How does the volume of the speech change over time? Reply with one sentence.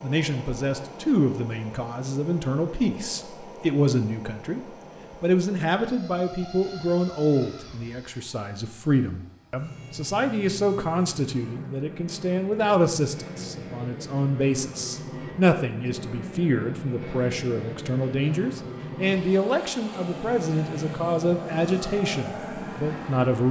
The volume of the speech stays about the same.